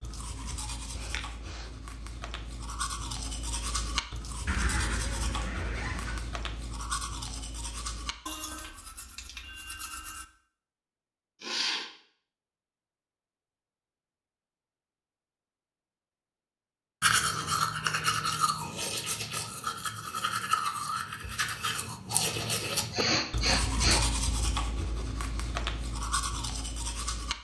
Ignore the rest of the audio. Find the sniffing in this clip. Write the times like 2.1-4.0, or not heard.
0.9-1.6, 11.4-11.9, 22.9-24.1.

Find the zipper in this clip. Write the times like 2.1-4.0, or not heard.
4.5-6.2.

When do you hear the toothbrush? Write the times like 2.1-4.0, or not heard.
0.0-10.2, 17.0-27.4.